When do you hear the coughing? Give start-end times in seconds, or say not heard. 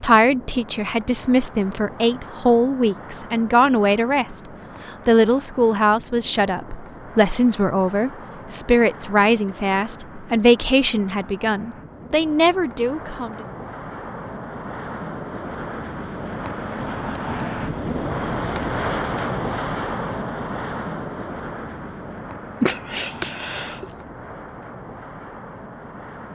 22.6-23.9.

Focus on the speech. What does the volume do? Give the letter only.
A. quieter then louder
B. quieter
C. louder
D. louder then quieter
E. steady
E.